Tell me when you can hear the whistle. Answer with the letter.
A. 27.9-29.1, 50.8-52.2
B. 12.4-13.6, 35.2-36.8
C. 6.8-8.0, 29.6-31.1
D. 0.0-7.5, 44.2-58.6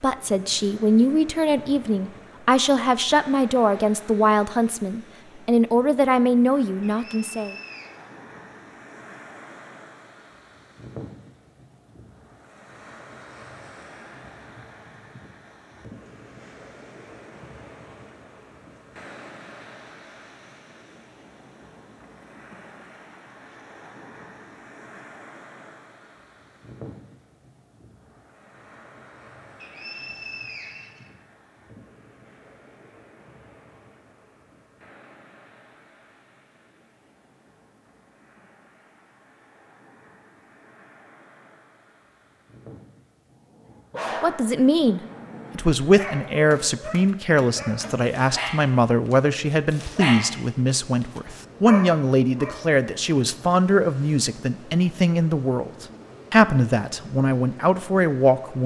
C.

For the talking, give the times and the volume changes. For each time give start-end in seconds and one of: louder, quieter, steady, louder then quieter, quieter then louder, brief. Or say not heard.
0.0-7.5 steady
44.2-58.6 steady.